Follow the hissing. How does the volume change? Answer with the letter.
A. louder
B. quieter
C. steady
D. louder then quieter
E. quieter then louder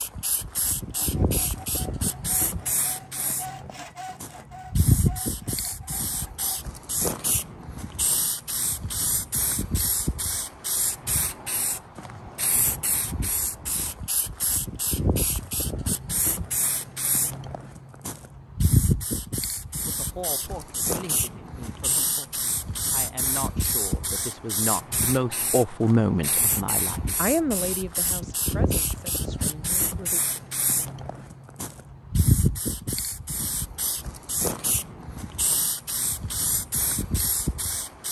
C.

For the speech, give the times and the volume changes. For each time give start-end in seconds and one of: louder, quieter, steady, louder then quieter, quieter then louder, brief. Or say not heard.
19.6-30.2 louder then quieter.